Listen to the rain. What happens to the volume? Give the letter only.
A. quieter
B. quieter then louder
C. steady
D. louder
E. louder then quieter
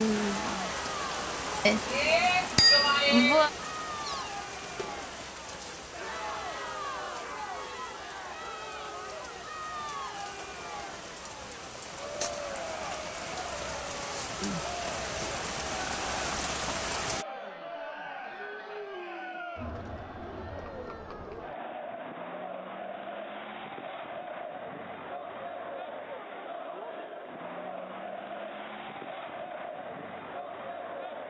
B.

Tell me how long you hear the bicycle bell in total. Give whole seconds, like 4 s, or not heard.
2 s.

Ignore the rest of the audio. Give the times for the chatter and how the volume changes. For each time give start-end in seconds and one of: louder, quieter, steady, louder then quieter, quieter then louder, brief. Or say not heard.
0.1-31.2 steady.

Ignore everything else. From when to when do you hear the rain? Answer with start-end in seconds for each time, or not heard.
0.0-17.2.